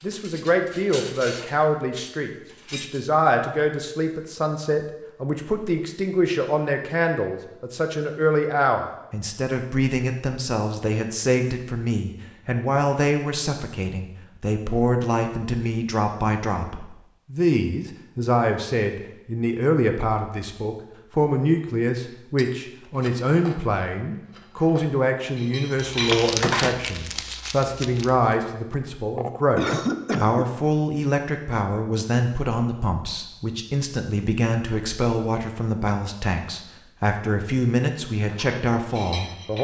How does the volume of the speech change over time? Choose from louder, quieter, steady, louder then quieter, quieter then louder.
steady.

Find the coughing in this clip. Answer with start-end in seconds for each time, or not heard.
28.7-30.5.